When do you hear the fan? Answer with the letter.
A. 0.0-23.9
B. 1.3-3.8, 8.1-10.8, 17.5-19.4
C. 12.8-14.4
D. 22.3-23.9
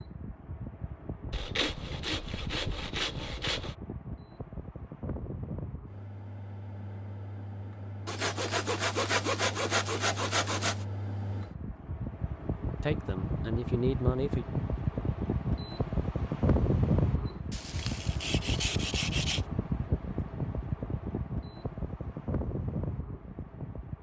A.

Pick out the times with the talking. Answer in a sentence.
You can hear the talking from 12.8 to 14.4 s.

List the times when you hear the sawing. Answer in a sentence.
The sawing can be heard from 1.3 to 3.8 s, from 8.1 to 10.8 s and from 17.5 to 19.4 s.